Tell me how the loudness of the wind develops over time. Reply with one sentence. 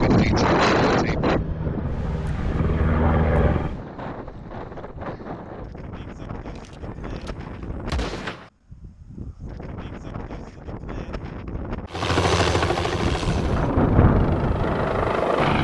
The volume of the wind goes down, then up.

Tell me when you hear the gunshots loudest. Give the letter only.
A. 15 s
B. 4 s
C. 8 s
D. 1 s
C.